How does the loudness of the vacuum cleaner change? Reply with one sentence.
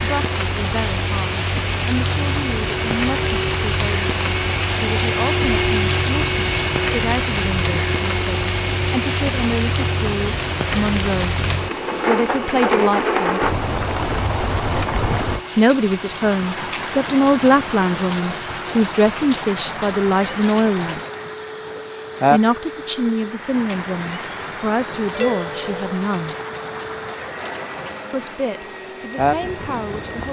The volume of the vacuum cleaner goes down.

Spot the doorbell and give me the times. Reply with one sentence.
You can hear the doorbell from 25.1 to 25.9 s.